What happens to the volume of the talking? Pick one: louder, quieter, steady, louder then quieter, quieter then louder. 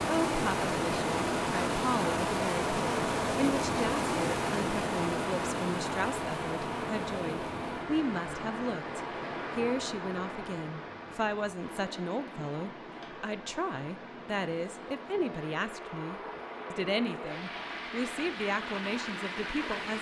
steady.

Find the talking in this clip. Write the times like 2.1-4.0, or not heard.
0.1-19.9.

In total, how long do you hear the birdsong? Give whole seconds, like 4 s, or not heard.
not heard.